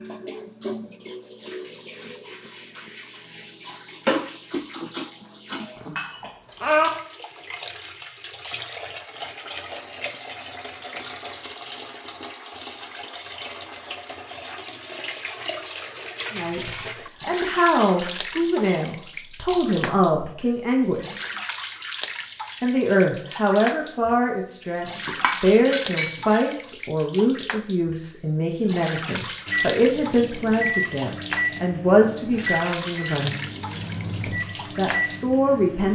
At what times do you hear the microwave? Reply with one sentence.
You can hear the microwave from 29.4 to 35.8 s.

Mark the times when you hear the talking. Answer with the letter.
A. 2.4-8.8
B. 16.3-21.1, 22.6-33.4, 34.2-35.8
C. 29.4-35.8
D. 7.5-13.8
B.